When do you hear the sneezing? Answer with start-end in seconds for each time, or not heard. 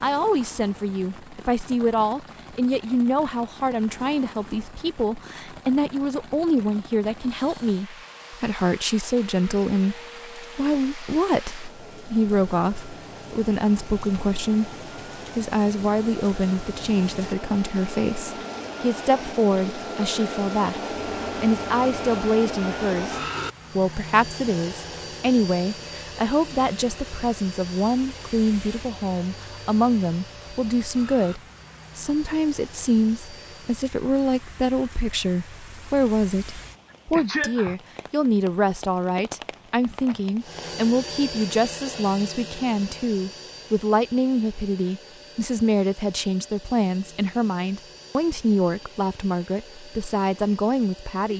37.1-37.8.